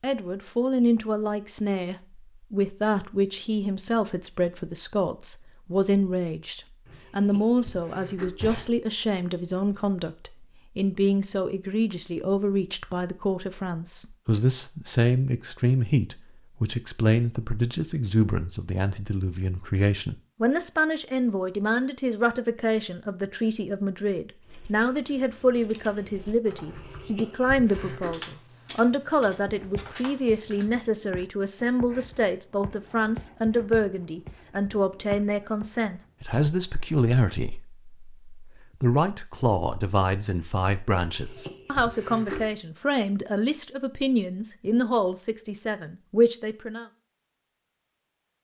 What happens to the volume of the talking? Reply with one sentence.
The loudness of the talking stays about the same.